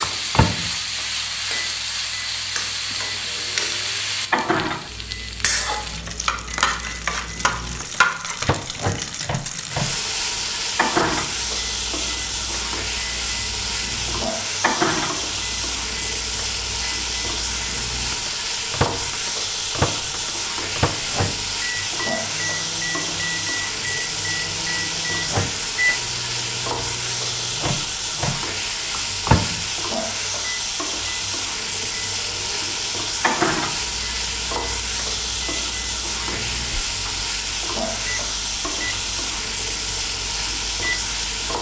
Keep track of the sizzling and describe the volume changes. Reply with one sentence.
The loudness of the sizzling stays about the same.